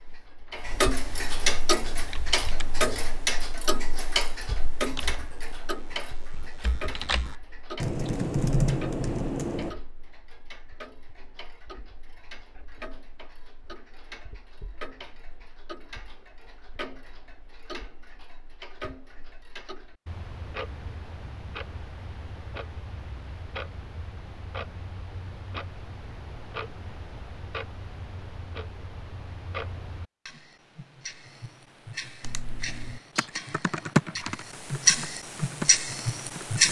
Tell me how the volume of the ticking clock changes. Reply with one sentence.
The volume of the ticking clock goes down, then up.